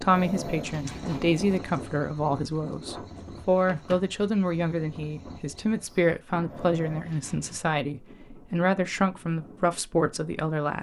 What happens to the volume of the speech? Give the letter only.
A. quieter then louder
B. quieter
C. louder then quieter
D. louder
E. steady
E.